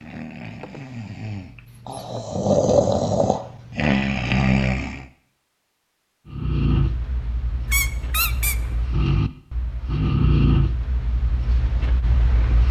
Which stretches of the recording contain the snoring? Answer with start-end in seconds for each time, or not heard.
0.0-5.0, 6.2-12.6.